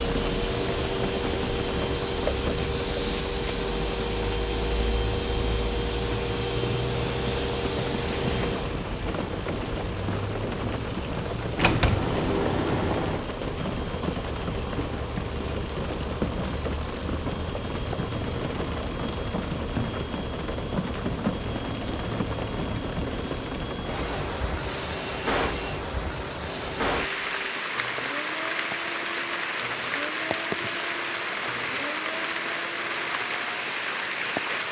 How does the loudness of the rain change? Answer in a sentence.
The loudness of the rain stays about the same.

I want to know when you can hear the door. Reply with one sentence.
The door can be heard from 11.6 to 13.2 s.